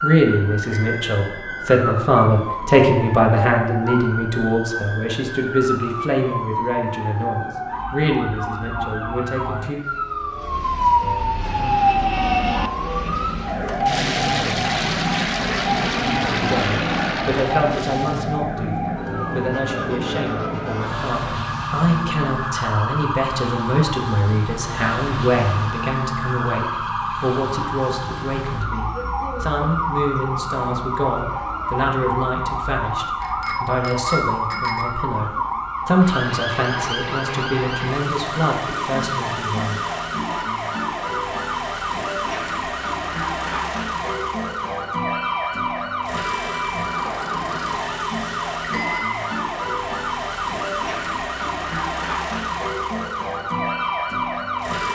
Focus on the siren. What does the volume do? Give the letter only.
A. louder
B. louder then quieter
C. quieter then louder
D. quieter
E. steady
E.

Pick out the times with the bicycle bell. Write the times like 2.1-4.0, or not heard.
0.6-1.6, 33.2-34.9, 48.6-49.1.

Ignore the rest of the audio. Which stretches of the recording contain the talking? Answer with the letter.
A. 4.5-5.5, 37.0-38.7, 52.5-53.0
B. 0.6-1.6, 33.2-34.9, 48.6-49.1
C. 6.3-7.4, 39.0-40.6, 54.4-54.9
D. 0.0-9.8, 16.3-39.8
D.